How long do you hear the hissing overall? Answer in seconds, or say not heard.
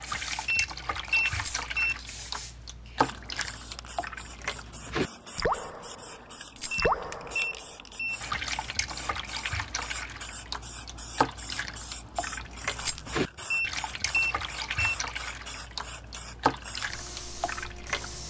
18 s.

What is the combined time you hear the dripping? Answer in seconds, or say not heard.
18 s.